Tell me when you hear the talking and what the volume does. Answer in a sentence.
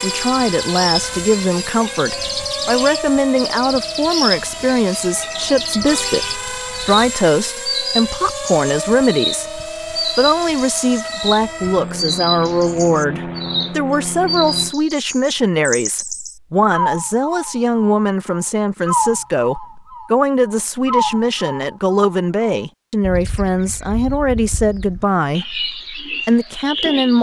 You can hear the talking from 0.0 to 27.1 s, at a steady volume.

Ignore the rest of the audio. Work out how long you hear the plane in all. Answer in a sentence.
You can hear the plane for 15 seconds altogether.